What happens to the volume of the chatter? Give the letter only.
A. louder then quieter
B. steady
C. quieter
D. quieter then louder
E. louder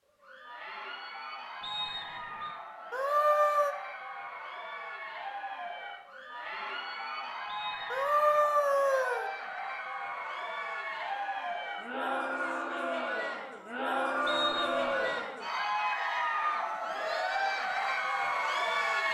E.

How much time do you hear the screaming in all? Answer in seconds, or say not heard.
3 s.